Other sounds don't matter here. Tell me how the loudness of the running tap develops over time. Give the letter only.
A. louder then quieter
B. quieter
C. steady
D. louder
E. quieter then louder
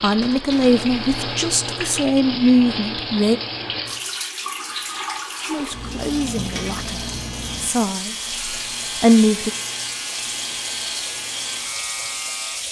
C.